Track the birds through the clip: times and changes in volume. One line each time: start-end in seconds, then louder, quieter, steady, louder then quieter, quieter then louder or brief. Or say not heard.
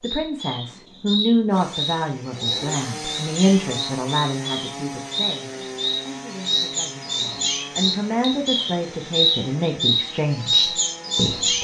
0.0-11.5 louder.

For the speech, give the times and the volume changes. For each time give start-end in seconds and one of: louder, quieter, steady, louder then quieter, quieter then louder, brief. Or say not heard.
0.0-11.5 quieter then louder.